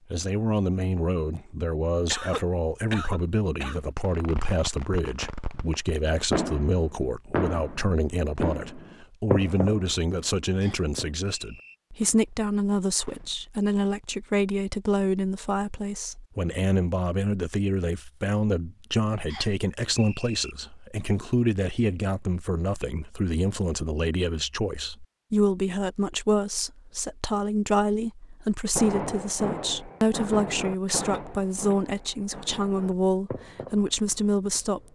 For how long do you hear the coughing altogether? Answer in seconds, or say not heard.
3 s.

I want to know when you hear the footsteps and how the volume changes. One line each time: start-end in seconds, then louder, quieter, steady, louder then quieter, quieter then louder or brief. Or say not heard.
not heard.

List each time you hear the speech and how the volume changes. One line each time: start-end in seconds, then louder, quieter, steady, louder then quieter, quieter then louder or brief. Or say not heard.
0.1-34.9 steady.